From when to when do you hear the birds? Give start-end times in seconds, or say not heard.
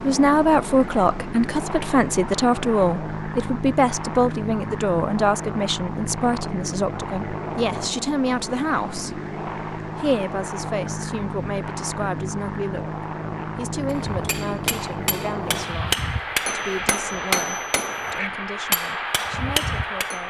not heard.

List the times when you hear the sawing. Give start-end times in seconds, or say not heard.
not heard.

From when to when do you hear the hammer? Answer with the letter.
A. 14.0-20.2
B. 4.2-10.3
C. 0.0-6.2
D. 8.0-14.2
A.